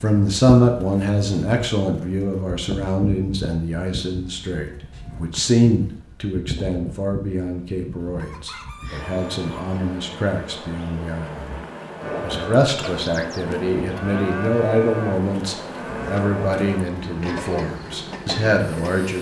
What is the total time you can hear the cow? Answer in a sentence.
The cow can be heard for 7 seconds in total.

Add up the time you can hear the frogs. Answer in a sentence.
You can't hear the frogs here.